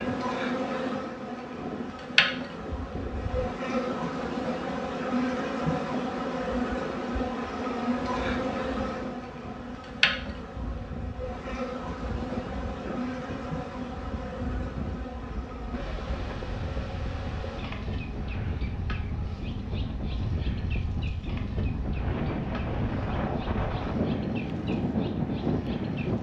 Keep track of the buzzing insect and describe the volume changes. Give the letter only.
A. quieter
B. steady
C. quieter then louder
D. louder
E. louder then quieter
A.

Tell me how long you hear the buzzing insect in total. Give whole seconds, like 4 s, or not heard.
26 s.